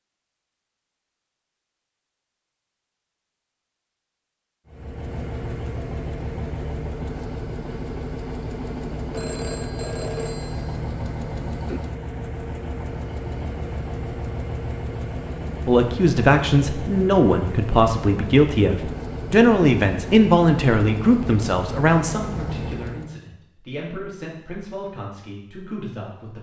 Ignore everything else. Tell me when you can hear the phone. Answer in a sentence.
You can hear the phone from 9.1 to 10.8 s.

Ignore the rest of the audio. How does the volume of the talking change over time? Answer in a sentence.
The volume of the talking goes down.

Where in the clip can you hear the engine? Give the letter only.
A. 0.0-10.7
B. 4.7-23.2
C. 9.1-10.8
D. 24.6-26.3
B.